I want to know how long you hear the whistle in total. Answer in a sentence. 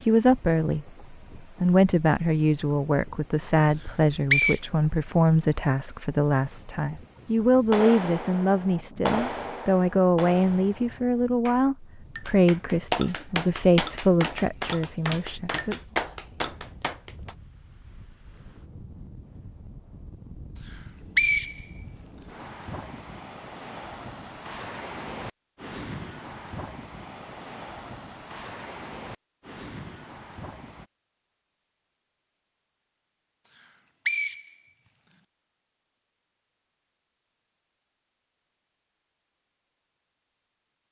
The whistle can be heard for 4 seconds in total.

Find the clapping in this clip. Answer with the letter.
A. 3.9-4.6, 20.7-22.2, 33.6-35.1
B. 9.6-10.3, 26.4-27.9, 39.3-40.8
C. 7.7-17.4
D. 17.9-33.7
C.